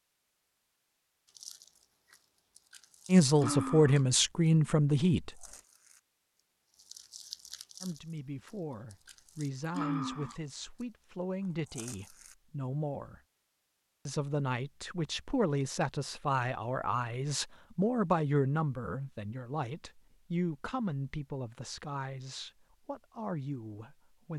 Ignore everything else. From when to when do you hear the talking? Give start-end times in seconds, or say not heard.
3.0-5.5, 7.8-13.2, 14.1-24.3.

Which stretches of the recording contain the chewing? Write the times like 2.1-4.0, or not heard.
1.2-4.5, 5.3-10.8, 11.7-12.3.